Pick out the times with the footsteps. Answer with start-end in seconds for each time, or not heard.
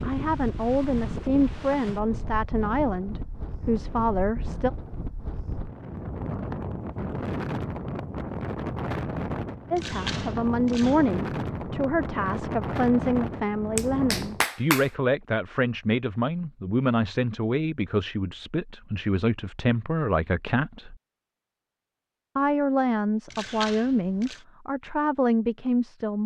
not heard.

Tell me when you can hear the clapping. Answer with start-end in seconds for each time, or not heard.
13.8-14.9.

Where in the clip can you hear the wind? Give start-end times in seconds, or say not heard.
0.0-14.4.